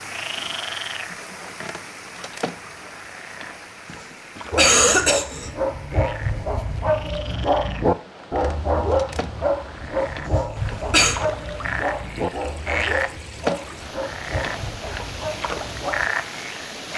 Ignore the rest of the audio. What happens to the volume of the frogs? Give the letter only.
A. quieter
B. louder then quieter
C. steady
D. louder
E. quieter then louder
E.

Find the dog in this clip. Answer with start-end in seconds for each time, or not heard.
4.5-16.1.